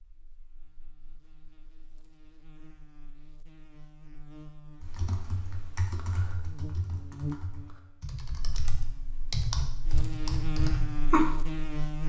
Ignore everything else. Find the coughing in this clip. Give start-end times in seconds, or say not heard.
not heard.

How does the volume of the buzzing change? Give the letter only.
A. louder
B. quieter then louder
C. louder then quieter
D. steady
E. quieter
A.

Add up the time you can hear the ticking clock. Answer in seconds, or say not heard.
not heard.